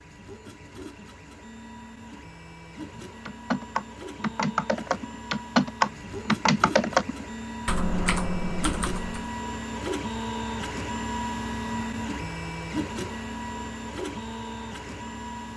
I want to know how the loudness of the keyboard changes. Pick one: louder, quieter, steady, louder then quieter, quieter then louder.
louder then quieter.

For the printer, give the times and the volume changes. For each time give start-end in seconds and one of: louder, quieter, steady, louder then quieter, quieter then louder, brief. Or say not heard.
0.0-15.5 louder.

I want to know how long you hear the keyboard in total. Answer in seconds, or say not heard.
6 s.